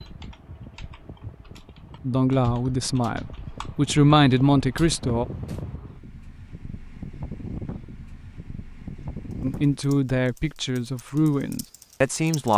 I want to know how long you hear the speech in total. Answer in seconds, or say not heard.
6 s.